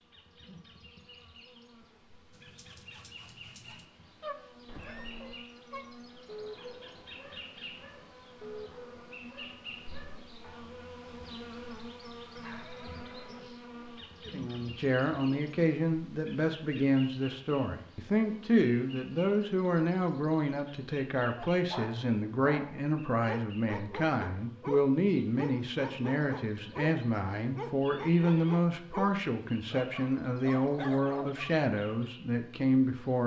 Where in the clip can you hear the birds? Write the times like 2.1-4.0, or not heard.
not heard.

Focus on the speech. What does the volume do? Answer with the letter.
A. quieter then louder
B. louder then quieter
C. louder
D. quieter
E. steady
E.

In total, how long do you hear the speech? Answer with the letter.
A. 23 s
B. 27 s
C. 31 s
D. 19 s
D.